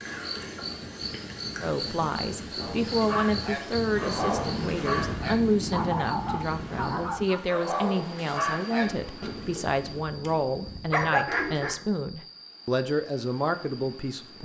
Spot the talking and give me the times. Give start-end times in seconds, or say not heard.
1.6-14.4.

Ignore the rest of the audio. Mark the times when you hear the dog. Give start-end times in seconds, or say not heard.
2.6-11.8.